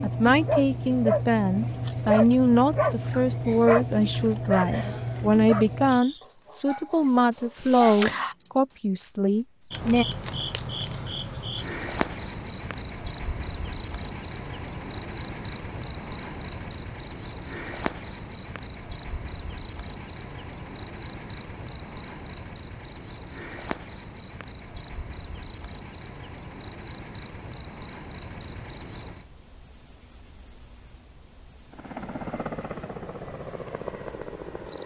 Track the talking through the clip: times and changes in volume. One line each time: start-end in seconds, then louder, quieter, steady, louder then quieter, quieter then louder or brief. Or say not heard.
0.0-10.1 steady.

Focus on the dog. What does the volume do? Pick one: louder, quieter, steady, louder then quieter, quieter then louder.
quieter.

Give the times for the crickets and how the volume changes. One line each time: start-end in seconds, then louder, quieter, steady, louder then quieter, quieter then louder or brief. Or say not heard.
0.0-34.8 quieter.